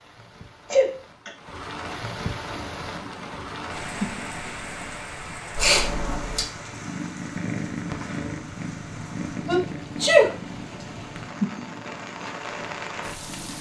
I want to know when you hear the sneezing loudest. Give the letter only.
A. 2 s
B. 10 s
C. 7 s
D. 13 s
B.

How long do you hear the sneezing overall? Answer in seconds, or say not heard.
2 s.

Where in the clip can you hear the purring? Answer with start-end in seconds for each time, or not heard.
2.4-13.5.